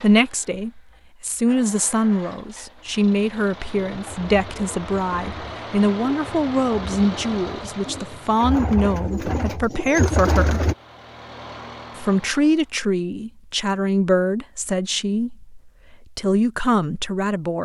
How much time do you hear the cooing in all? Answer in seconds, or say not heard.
7 s.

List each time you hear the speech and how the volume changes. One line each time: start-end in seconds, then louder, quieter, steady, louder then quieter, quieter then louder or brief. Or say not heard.
0.0-10.7 steady
11.9-17.6 quieter then louder.